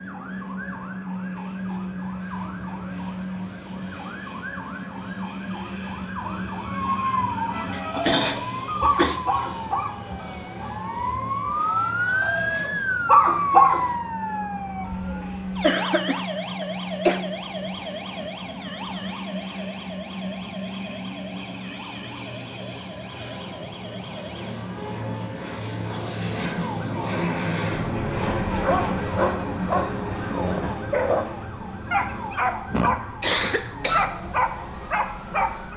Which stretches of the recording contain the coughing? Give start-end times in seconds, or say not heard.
7.7-9.2, 15.6-17.2, 32.7-34.1.